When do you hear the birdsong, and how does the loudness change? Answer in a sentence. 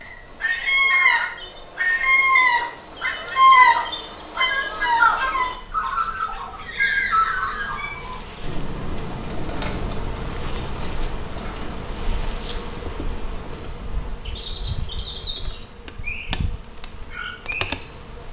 The birdsong can be heard from 0.0 to 18.1 s, getting quieter then louder.